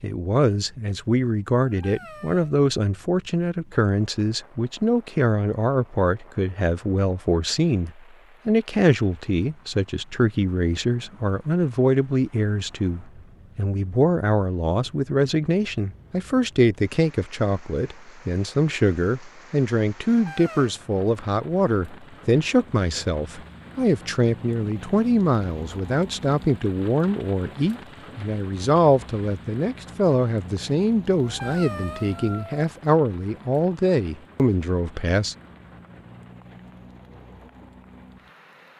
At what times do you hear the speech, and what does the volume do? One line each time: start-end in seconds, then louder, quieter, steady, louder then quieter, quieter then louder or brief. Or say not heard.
0.0-35.4 steady.